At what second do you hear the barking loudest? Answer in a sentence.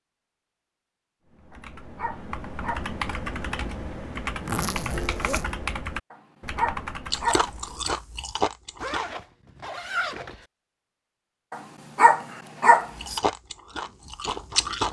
The volume of the barking peaks at 13 seconds.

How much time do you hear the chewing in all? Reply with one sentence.
You can hear the chewing for 4 seconds altogether.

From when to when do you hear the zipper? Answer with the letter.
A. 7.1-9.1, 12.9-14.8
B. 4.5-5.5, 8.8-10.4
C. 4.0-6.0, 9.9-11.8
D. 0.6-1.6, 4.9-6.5
B.